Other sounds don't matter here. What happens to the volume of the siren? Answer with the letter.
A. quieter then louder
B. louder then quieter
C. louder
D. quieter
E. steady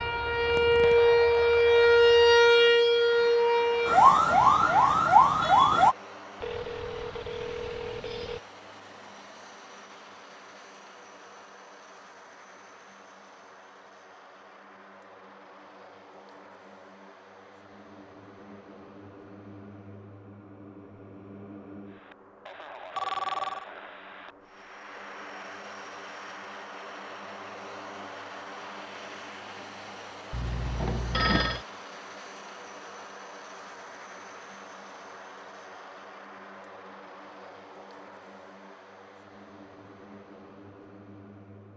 E.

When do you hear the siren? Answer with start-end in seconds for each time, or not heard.
0.0-6.0.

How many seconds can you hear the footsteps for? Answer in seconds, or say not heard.
not heard.